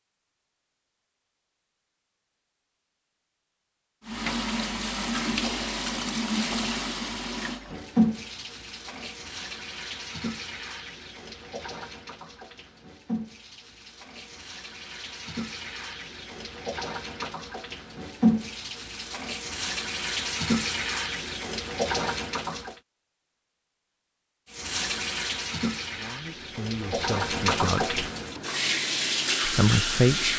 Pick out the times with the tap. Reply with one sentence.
The tap can be heard from 4.0 to 22.8 s and from 24.5 to 30.3 s.